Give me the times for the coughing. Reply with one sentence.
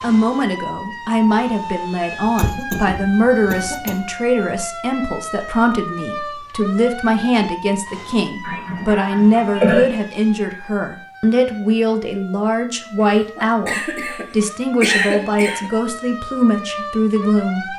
The coughing can be heard from 2.2 to 4.0 s, from 8.4 to 9.9 s and from 13.3 to 15.7 s.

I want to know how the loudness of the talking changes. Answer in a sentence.
The volume of the talking stays about the same.